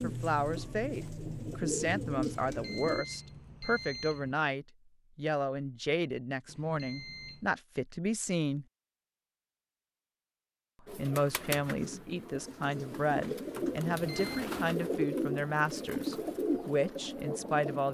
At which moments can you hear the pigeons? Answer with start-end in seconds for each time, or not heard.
0.0-3.0, 10.8-17.8.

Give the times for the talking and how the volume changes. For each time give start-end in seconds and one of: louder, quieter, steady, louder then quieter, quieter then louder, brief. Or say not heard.
0.0-8.7 steady
10.9-17.8 steady.